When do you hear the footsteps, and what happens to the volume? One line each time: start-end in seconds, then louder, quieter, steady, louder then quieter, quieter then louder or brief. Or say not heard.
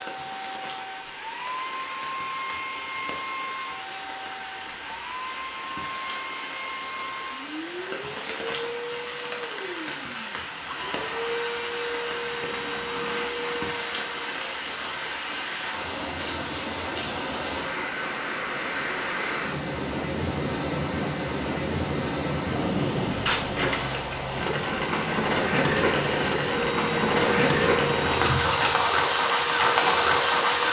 not heard.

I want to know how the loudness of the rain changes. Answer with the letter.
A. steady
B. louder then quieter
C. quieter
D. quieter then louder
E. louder
E.